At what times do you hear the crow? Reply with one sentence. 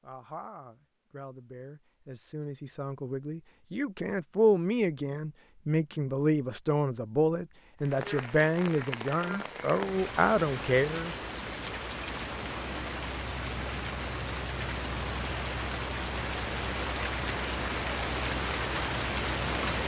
The crow can't be heard in this clip.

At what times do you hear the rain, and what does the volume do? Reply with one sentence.
You can hear the rain from 7.8 to 19.8 s, getting louder.